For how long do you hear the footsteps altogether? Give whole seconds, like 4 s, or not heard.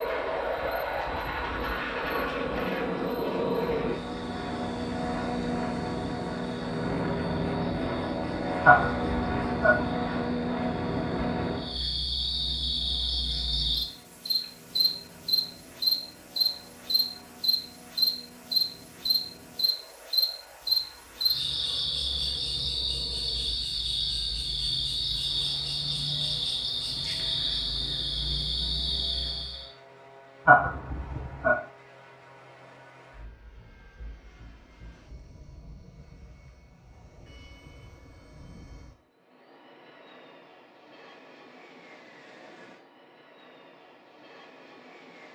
not heard.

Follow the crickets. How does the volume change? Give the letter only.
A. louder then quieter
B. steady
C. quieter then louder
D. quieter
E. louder
E.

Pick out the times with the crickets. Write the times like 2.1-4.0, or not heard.
0.0-29.7.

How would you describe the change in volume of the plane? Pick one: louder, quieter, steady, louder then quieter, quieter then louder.
quieter.